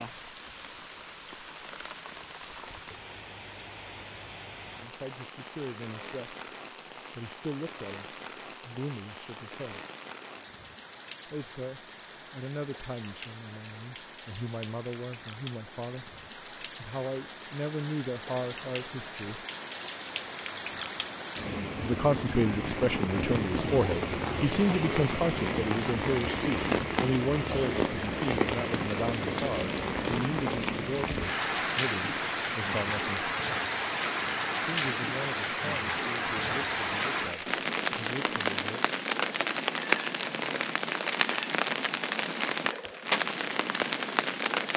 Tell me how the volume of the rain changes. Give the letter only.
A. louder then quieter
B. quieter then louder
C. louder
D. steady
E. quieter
C.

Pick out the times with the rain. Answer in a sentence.
You can hear the rain from 0.0 to 44.7 s.